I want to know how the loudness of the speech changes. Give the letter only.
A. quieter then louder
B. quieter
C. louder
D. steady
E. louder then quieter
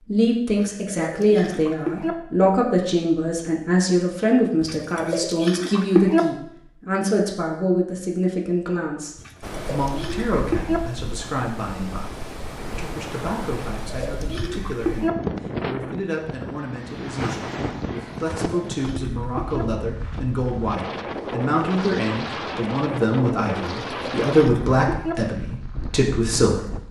A.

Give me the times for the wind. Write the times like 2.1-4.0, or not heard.
9.4-26.8.